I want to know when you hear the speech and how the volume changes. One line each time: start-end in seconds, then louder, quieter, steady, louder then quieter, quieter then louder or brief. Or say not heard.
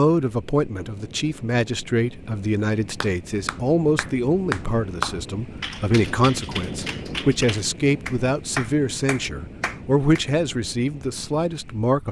0.0-12.0 steady.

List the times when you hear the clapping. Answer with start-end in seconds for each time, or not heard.
3.0-10.2.